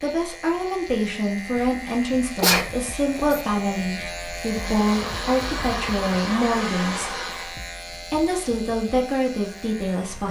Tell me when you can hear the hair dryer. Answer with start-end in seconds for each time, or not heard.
4.5-7.5.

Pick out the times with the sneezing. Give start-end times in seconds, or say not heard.
2.4-3.4.